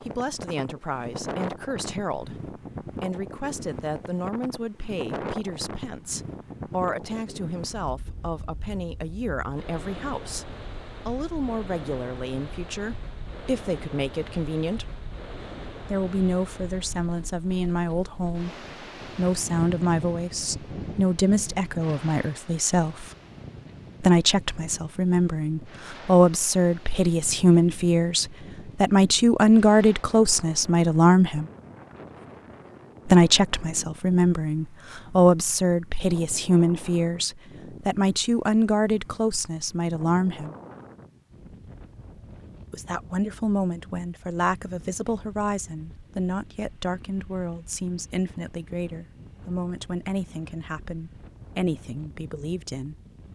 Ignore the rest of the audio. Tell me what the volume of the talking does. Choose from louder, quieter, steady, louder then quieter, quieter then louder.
louder then quieter.